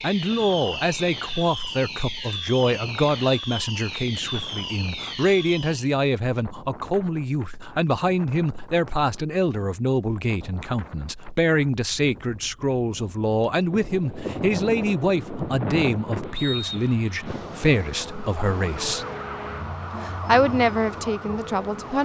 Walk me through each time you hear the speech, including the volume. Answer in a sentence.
You can hear the speech from 0.0 to 19.1 s, at a steady volume; and briefly from 20.0 to 21.9 s.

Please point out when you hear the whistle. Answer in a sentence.
The whistle can be heard from 16.4 to 16.9 s.